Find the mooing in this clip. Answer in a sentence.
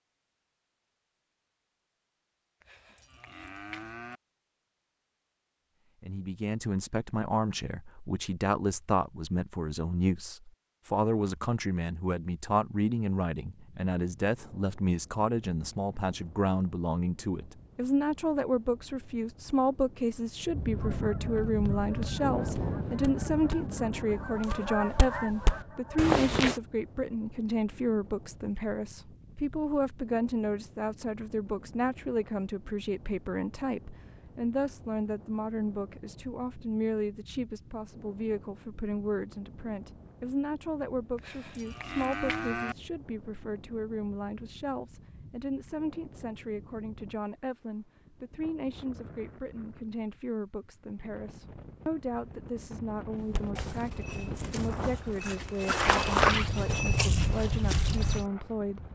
The mooing can be heard from 2.6 to 4.2 s and from 41.1 to 42.8 s.